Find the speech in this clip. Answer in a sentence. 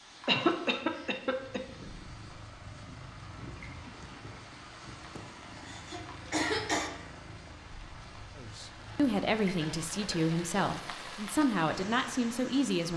The speech can be heard from 8.3 to 12.9 s.